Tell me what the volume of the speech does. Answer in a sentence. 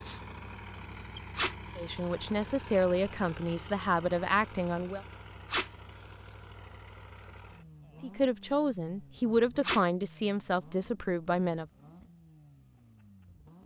The volume of the speech stays about the same.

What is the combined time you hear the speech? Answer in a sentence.
The speech can be heard for 7 seconds in total.